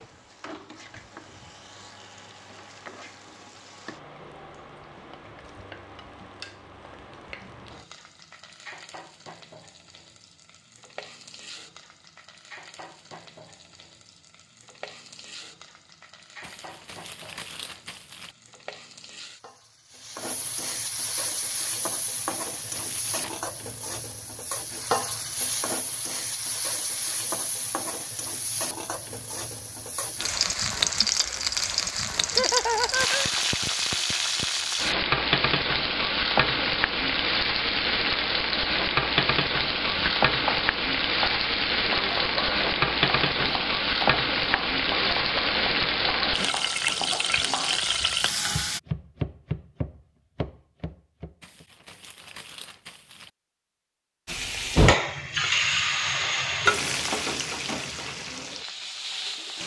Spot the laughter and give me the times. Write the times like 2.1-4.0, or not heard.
32.3-33.3.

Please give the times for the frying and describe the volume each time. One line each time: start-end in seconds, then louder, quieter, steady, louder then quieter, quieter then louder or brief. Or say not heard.
0.0-48.8 louder
54.2-59.6 quieter.